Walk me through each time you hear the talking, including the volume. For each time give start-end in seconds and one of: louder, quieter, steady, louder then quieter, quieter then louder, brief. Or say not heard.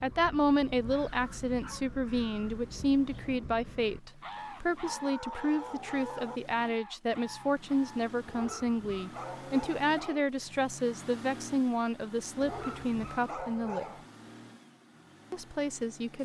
0.0-13.8 steady
15.3-16.2 brief.